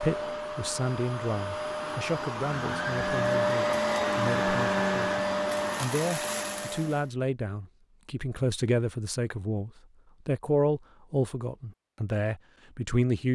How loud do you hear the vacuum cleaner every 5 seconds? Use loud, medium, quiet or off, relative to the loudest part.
loud, loud, off.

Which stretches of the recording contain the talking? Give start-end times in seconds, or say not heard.
0.0-13.3.